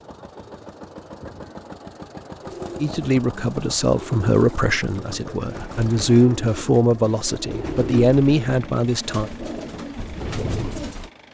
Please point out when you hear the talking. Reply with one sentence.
You can hear the talking from 2.8 to 9.3 s.